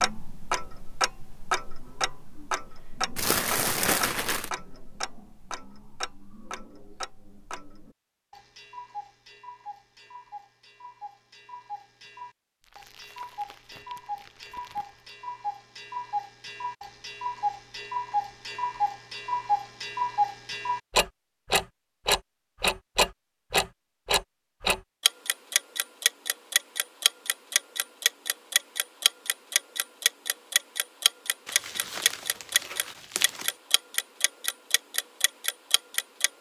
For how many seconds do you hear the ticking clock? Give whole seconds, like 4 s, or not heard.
36 s.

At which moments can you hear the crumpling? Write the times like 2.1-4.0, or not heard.
3.1-4.5, 12.6-15.0, 31.4-33.5.